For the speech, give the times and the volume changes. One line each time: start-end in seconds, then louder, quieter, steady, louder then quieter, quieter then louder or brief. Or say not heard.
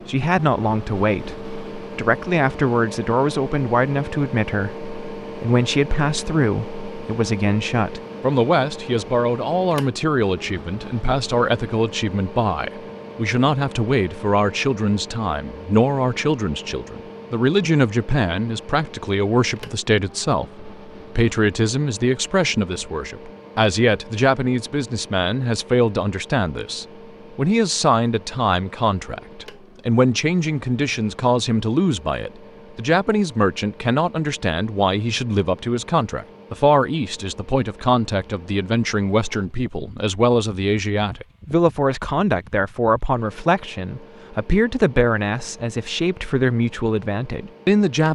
0.1-48.1 steady.